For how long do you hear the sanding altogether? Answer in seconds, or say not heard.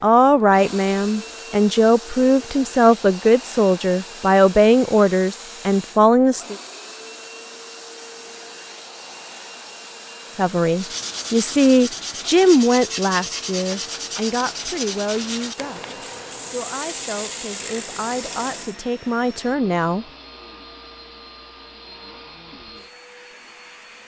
8 s.